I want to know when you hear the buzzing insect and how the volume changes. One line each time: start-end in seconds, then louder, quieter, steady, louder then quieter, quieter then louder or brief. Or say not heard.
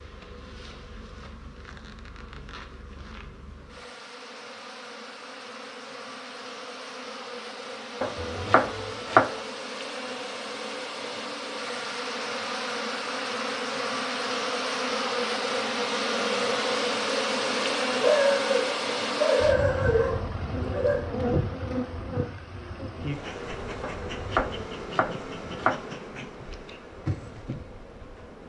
0.0-28.4 louder then quieter.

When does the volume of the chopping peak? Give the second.
9 s.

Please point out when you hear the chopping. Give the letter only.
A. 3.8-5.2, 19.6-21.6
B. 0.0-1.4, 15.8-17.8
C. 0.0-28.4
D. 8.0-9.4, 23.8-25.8
D.